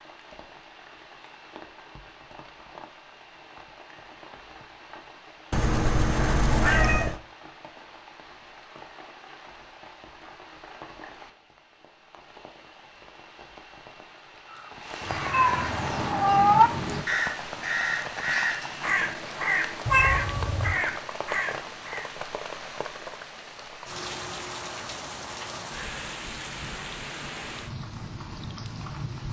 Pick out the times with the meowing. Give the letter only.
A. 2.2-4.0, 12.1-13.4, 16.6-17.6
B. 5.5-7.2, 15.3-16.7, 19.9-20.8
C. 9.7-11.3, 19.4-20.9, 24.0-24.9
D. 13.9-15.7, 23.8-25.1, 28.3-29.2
B.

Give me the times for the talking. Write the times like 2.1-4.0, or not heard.
not heard.